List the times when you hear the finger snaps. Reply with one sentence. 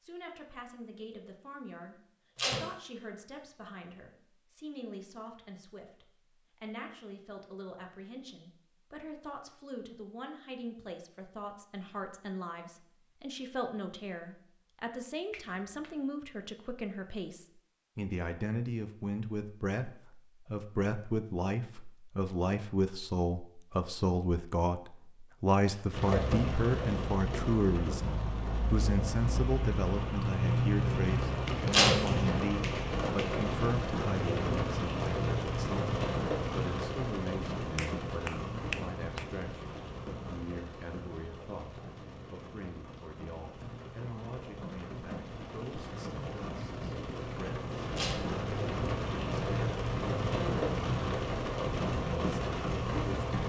You can hear the finger snaps from 15.3 to 16.0 s, from 31.4 to 33.4 s and from 37.8 to 39.2 s.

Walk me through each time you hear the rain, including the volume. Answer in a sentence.
The rain can be heard from 25.9 to 53.4 s, getting quieter then louder.